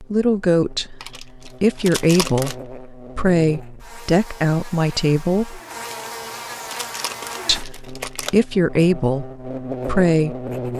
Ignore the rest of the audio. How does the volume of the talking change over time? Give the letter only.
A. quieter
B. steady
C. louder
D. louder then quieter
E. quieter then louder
B.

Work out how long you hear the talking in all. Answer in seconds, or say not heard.
9 s.